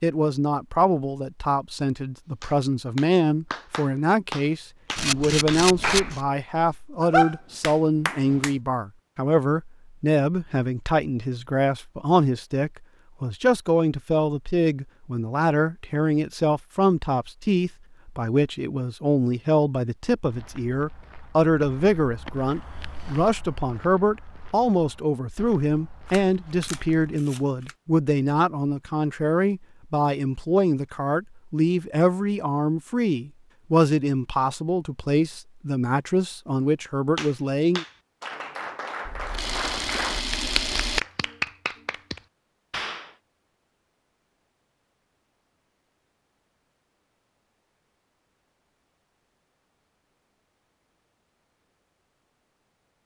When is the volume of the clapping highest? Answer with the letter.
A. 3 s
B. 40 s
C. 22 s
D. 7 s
D.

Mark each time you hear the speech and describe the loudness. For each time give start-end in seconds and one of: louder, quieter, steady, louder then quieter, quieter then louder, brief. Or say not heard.
0.0-37.9 steady.